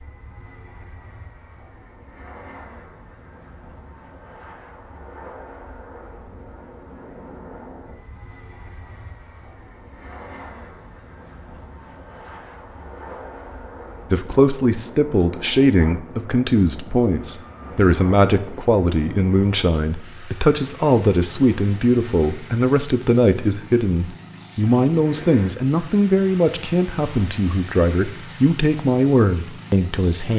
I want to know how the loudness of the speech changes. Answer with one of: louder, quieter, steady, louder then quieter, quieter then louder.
steady.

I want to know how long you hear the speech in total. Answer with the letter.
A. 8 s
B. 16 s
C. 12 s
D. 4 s
B.